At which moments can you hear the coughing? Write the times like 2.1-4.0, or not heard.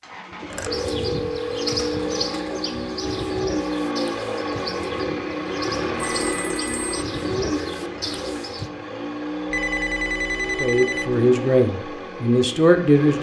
not heard.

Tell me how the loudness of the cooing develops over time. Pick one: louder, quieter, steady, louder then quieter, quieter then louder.
quieter then louder.